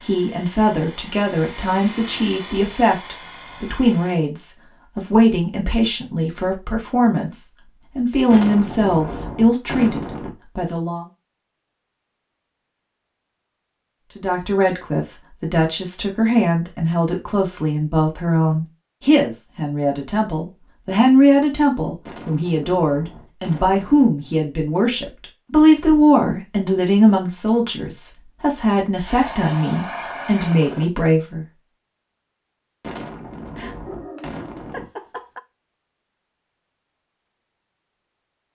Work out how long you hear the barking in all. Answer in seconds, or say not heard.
2 s.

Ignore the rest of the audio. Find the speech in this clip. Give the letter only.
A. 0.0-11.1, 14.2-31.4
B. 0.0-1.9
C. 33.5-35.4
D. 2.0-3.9
A.